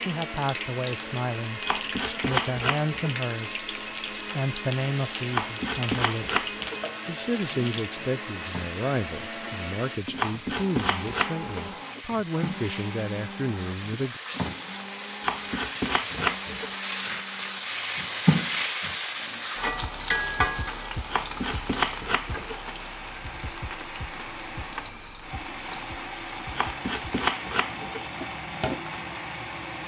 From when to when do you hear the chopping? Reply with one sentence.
You can hear the chopping from 1.6 to 3.2 s, from 5.3 to 6.8 s, from 10.2 to 11.7 s, from 15.2 to 16.8 s, from 21.1 to 22.6 s and from 26.6 to 28.1 s.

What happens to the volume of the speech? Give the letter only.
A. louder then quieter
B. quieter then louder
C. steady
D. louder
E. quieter
C.